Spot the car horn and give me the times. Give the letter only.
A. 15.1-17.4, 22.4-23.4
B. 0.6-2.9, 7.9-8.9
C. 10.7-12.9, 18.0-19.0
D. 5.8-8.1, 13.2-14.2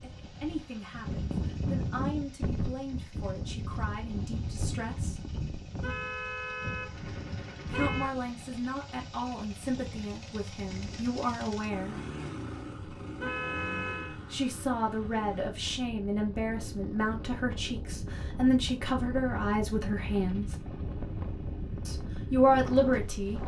D.